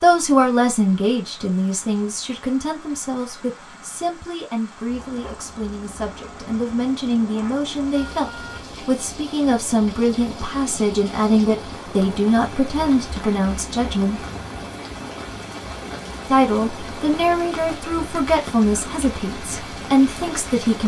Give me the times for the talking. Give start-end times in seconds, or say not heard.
0.0-14.2, 16.2-20.8.